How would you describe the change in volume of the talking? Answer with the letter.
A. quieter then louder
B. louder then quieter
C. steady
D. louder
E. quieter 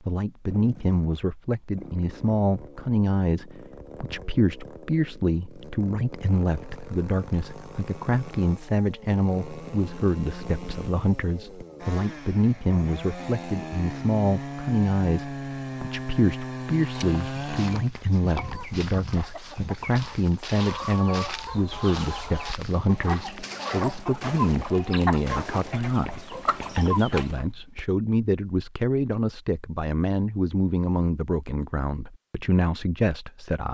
C.